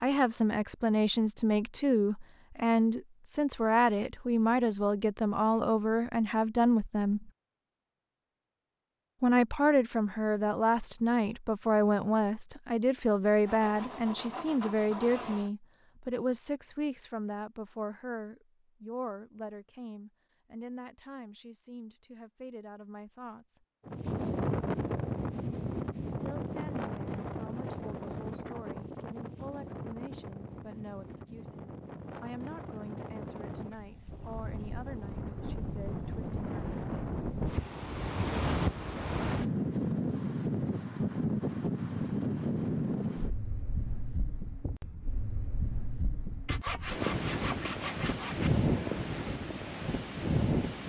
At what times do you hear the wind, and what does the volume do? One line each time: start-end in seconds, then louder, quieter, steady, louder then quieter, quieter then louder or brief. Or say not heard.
23.9-50.8 quieter then louder.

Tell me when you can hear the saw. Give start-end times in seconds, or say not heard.
13.4-15.5, 46.5-48.5.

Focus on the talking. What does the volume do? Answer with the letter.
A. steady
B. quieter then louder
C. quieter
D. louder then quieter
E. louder
C.